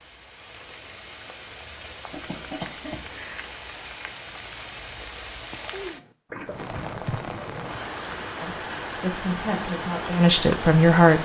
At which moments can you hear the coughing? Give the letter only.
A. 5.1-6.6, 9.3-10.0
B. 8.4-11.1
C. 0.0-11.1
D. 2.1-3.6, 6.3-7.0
D.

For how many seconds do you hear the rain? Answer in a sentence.
The rain can be heard for 11 seconds in total.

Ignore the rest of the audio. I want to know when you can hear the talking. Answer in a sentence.
The talking can be heard from 8.4 to 11.1 s.